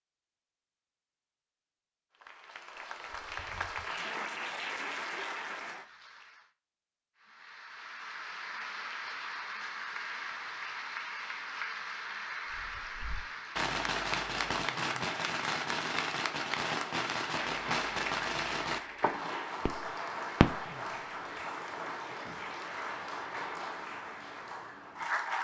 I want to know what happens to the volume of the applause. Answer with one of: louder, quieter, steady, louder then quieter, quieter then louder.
steady.